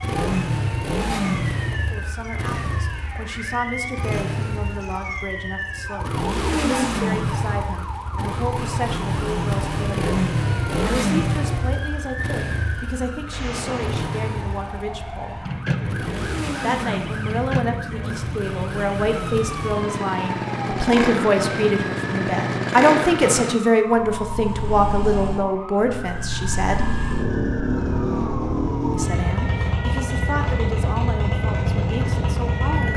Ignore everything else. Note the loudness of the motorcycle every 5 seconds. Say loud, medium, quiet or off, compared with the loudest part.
loud, loud, loud, medium, loud, loud, loud.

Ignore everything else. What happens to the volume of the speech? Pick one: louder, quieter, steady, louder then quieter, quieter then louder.
louder then quieter.